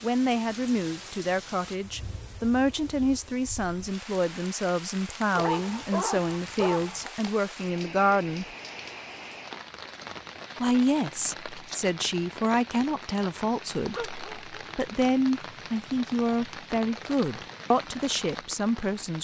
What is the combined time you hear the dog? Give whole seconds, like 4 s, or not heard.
2 s.